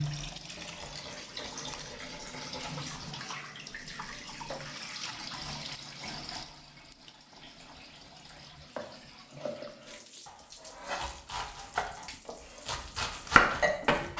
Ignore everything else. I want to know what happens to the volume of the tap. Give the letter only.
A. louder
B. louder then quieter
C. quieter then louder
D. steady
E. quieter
E.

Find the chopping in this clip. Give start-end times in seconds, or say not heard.
8.8-14.1.